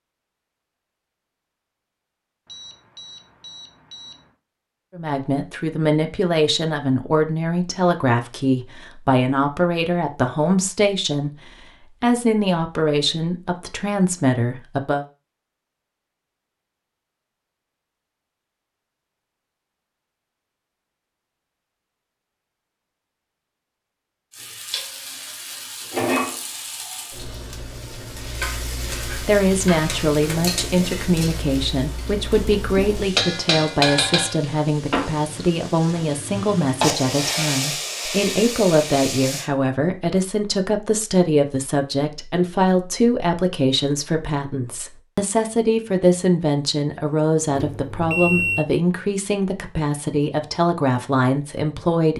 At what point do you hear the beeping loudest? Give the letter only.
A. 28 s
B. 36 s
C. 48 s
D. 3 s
C.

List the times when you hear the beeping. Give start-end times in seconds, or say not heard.
2.5-4.2, 47.5-48.6.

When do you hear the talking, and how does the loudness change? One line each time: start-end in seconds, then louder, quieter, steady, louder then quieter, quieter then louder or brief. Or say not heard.
5.0-15.1 steady
29.2-52.1 steady.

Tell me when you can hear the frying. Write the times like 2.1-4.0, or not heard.
24.3-39.5.